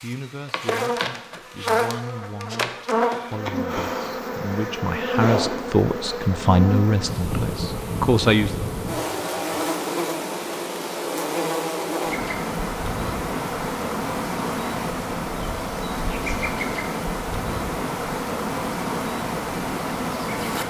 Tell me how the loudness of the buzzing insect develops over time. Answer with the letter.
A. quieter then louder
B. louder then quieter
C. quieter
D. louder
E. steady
E.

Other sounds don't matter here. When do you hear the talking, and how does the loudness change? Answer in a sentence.
You can hear the talking from 0.0 to 8.6 s, getting louder.